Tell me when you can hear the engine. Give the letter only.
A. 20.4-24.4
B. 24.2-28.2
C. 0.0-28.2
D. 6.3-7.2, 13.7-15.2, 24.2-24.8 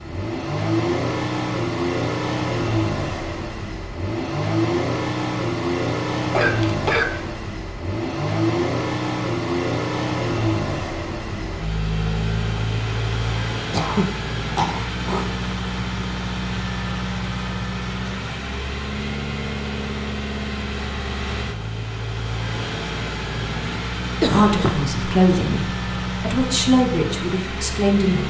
C.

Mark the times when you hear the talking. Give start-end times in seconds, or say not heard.
24.2-28.2.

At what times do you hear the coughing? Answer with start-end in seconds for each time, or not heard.
6.3-7.2, 13.7-15.2, 24.2-24.8.